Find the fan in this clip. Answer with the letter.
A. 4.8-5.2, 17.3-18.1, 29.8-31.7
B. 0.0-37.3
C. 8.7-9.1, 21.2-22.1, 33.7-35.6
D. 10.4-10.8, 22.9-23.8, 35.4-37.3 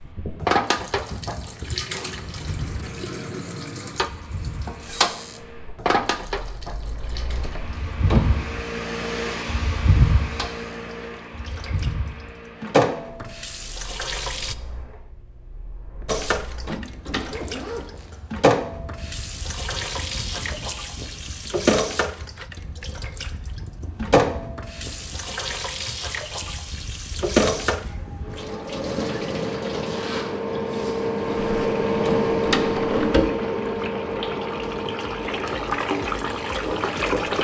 B.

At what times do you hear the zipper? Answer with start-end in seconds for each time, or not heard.
4.8-5.2, 17.3-18.1, 29.8-31.7.